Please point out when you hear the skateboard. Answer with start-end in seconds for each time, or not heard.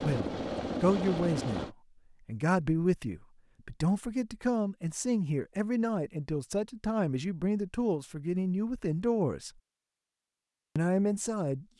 not heard.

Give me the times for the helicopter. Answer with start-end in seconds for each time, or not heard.
0.0-1.8.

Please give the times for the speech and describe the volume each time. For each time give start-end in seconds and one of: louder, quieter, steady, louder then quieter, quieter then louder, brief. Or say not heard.
0.0-9.5 steady
10.8-11.7 brief.